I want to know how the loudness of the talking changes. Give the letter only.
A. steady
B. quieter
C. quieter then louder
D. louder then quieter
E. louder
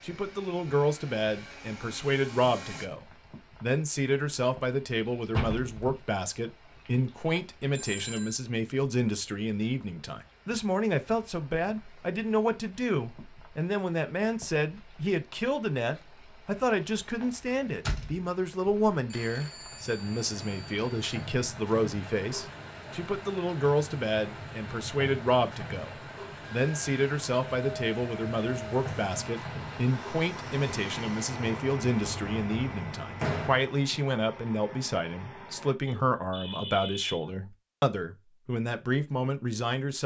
A.